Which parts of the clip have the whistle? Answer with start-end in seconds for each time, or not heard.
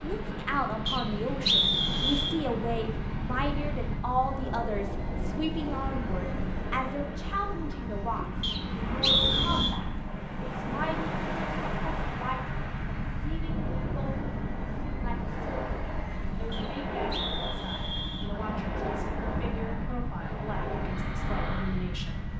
0.8-2.4, 8.4-9.8, 16.5-18.3.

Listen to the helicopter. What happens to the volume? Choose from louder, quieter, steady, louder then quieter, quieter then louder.
steady.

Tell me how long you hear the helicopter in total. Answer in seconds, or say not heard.
22 s.